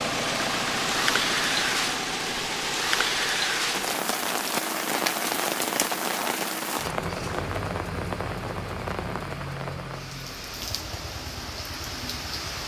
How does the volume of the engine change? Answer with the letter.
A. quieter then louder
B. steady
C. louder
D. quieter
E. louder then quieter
D.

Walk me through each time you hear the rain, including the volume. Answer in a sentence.
The rain can be heard from 0.0 to 12.6 s, getting quieter.